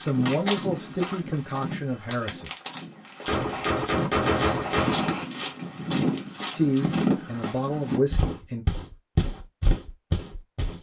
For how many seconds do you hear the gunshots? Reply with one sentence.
You can hear the gunshots for 2 seconds altogether.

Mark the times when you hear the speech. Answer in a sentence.
You can hear the speech from 0.0 to 2.5 s and from 6.5 to 8.7 s.